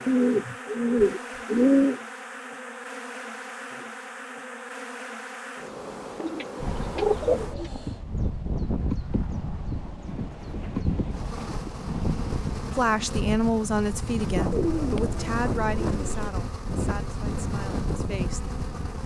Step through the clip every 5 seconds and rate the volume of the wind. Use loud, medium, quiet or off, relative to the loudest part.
off, loud, loud, loud.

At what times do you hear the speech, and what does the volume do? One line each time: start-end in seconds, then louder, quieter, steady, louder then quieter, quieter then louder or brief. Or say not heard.
12.8-18.5 quieter.